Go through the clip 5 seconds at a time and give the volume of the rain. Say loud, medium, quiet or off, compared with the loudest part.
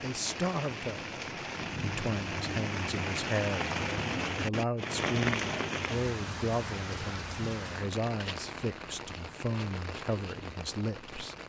loud, loud, medium.